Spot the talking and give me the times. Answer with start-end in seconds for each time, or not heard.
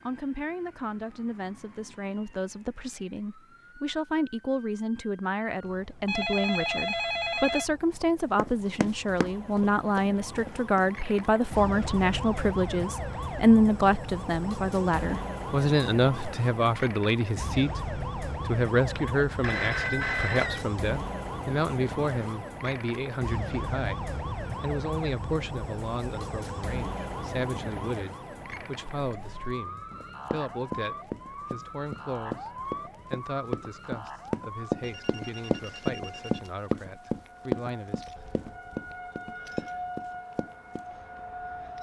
0.1-38.0.